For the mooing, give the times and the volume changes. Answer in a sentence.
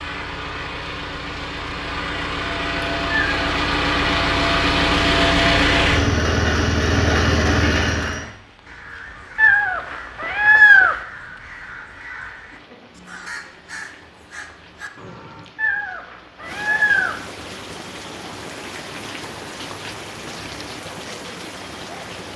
The mooing can't be heard in this clip.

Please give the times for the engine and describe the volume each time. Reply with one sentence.
The engine can be heard from 0.0 to 8.2 s, getting louder.